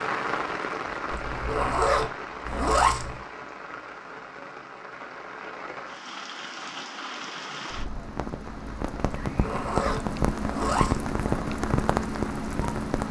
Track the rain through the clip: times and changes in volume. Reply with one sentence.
You can hear the rain from 0.0 to 13.0 s, getting quieter then louder.